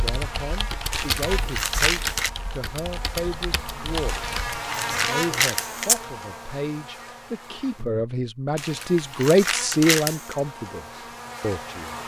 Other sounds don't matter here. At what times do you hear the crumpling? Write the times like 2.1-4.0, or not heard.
0.9-2.3, 4.0-6.0, 8.6-10.3.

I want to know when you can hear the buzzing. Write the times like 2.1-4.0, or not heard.
0.0-12.0.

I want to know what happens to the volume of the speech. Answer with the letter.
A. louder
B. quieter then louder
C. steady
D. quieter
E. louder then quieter
A.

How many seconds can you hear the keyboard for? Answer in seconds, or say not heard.
5 s.